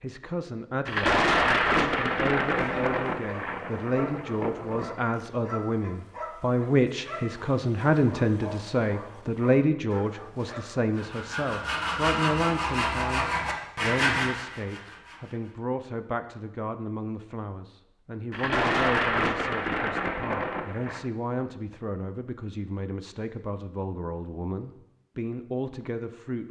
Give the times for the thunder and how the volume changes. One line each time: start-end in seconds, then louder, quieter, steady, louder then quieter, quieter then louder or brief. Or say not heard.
0.8-5.0 quieter
18.3-21.1 brief.